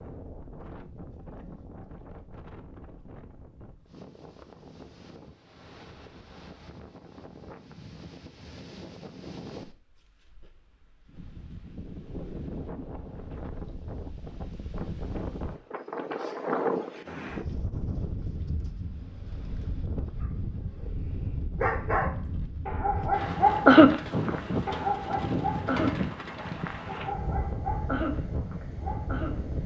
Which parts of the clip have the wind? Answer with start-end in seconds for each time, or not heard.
0.0-29.6.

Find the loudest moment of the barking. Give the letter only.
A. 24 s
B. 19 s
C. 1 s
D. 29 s
A.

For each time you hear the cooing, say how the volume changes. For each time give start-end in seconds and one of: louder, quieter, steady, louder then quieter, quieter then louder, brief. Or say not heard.
not heard.